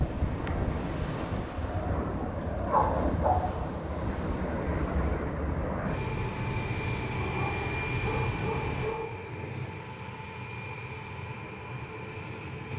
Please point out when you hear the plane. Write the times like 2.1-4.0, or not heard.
0.0-12.7.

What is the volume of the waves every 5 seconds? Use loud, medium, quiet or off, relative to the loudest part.
loud, loud, off.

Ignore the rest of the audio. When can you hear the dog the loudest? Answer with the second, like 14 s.
3 s.